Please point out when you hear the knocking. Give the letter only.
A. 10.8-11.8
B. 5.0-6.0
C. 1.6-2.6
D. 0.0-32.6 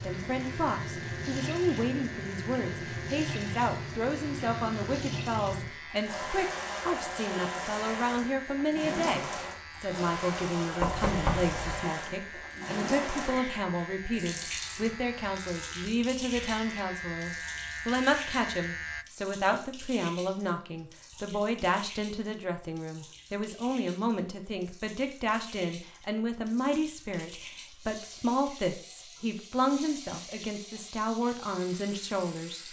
A.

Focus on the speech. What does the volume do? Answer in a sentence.
The volume of the speech stays about the same.